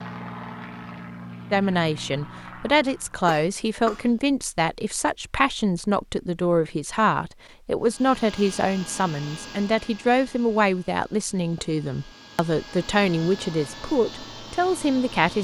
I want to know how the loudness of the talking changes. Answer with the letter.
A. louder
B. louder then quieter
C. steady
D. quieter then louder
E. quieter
C.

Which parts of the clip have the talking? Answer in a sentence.
You can hear the talking from 1.5 to 15.3 s.